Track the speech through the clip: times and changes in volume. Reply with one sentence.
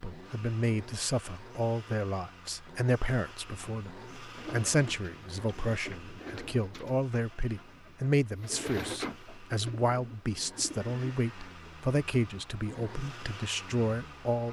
You can hear the speech from 0.0 to 14.4 s, at a steady volume.